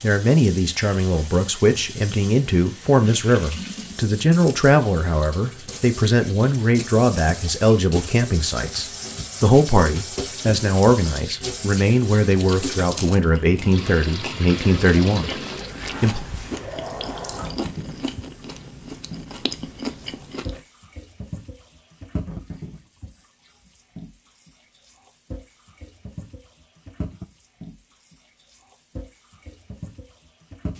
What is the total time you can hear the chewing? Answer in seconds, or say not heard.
8 s.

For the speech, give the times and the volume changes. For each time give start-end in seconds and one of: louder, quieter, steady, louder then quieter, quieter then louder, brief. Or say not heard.
0.0-16.2 steady.